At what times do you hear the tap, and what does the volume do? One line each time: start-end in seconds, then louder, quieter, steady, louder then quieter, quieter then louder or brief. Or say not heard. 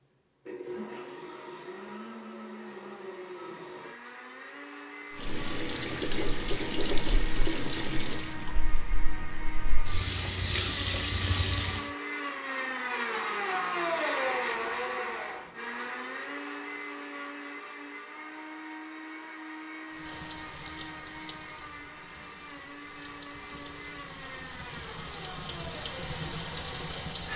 5.2-11.9 quieter then louder
19.9-27.3 quieter then louder.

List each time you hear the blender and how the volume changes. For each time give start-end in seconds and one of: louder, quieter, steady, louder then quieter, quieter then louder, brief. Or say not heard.
0.0-27.3 louder then quieter.